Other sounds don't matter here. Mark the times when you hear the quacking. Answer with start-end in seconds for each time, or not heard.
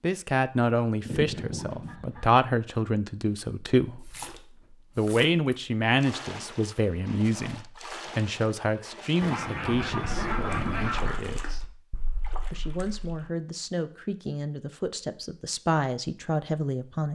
1.1-2.4, 9.2-11.2.